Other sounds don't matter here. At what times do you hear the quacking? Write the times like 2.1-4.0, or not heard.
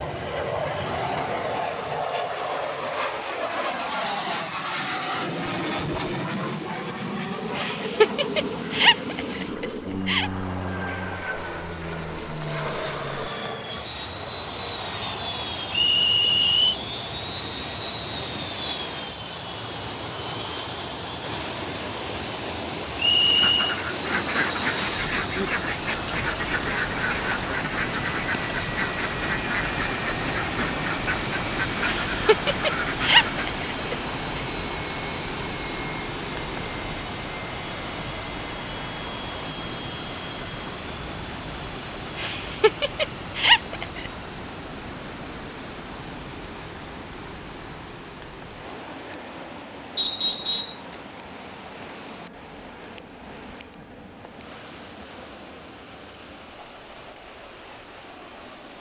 23.3-33.5.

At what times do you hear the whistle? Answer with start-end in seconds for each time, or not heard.
15.7-16.8, 22.9-23.8, 50.0-50.8.